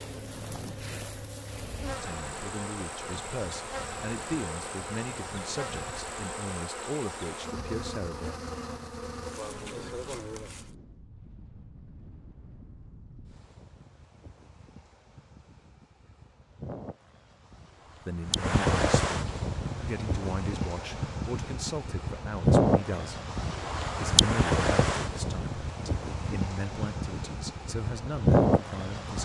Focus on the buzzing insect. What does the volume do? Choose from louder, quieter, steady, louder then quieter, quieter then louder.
steady.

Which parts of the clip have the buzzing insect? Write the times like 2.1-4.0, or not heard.
0.0-10.7.